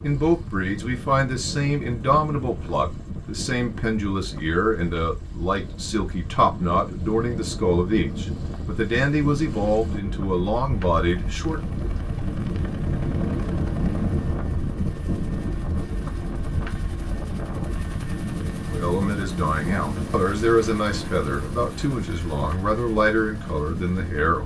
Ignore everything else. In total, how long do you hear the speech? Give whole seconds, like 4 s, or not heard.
17 s.